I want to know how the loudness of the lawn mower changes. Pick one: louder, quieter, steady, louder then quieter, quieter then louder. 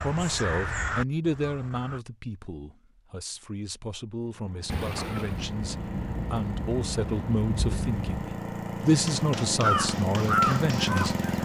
louder.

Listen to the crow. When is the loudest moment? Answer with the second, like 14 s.
10 s.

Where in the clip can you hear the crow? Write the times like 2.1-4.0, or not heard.
0.0-2.0, 9.6-11.4.